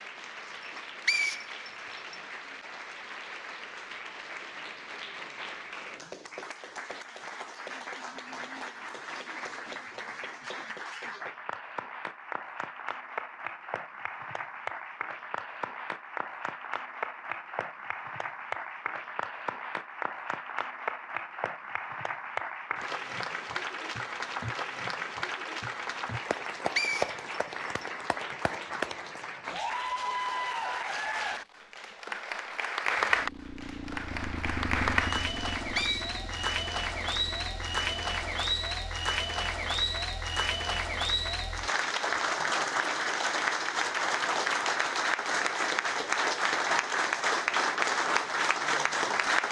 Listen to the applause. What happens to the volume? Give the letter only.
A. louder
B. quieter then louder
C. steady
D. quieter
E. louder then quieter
A.